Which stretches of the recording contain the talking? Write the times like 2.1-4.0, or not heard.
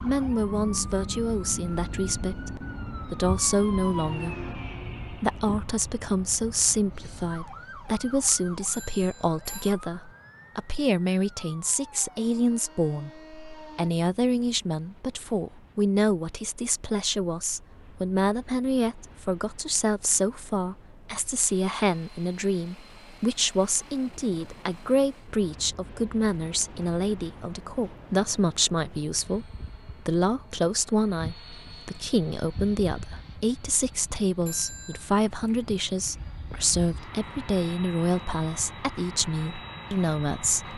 0.0-40.7.